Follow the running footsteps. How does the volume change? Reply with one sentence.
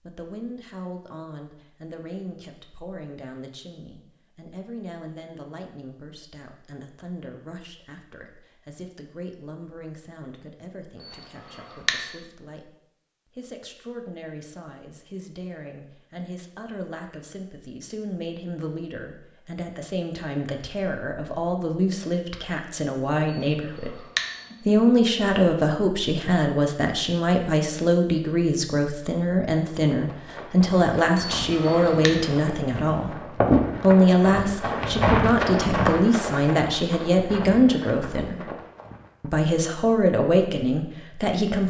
The volume of the running footsteps goes up, then down.